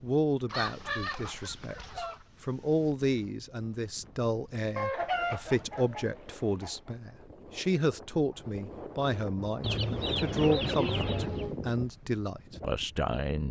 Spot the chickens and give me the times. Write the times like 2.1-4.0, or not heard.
0.5-2.2, 4.8-6.9, 9.6-11.6.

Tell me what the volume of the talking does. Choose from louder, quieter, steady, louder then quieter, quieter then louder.
steady.